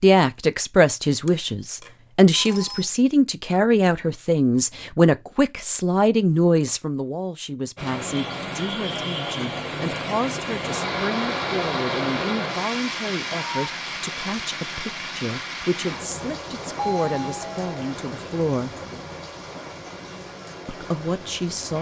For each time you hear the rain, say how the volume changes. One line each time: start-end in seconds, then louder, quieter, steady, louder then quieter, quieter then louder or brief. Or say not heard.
7.8-21.7 quieter.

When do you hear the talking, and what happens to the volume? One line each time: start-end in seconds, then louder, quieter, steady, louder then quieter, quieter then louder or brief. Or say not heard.
0.0-18.8 quieter
20.6-21.7 brief.